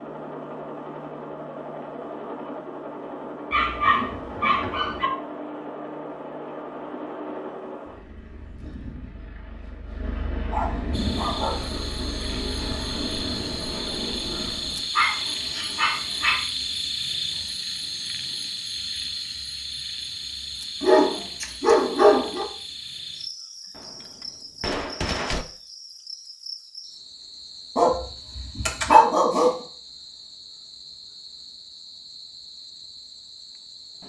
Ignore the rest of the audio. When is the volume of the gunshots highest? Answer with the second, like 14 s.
25 s.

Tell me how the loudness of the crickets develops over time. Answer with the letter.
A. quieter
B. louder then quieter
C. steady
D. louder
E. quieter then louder
A.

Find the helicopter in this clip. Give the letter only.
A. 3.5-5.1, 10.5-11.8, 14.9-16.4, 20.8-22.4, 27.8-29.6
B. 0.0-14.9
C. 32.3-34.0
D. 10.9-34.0
B.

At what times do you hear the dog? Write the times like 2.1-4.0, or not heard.
3.5-5.1, 10.5-11.8, 14.9-16.4, 20.8-22.4, 27.8-29.6.